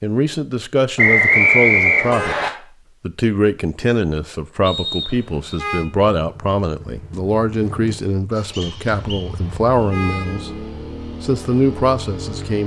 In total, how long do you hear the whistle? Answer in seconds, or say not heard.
4 s.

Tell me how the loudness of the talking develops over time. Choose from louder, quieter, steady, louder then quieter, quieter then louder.
steady.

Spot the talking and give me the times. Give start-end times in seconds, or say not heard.
0.0-12.6.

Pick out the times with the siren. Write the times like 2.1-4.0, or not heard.
not heard.